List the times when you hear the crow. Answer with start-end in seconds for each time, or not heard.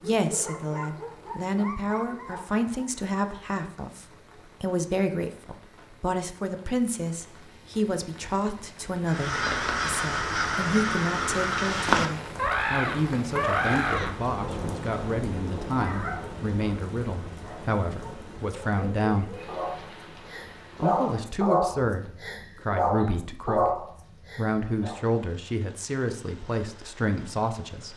9.1-14.2.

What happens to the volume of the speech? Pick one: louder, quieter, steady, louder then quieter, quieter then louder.
steady.